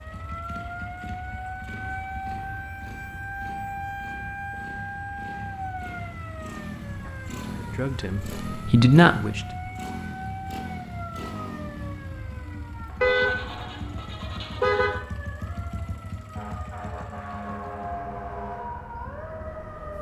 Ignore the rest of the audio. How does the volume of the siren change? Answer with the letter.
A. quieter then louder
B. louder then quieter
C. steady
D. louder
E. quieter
A.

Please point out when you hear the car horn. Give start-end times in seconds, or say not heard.
13.0-14.9.